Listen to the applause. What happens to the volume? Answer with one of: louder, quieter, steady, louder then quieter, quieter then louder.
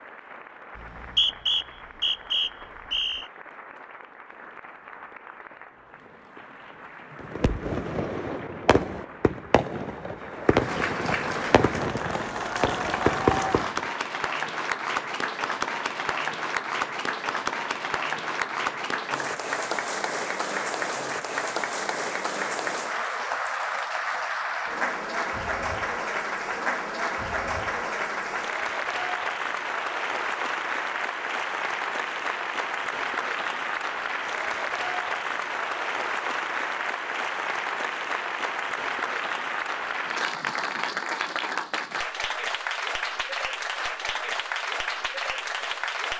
louder.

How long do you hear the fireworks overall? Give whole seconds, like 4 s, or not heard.
7 s.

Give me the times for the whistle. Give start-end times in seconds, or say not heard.
0.8-3.2.